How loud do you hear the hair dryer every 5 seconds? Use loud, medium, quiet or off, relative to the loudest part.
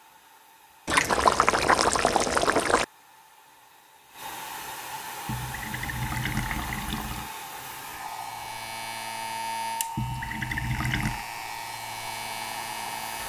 medium, loud, loud.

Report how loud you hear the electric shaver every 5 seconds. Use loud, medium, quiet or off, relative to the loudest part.
off, loud, loud.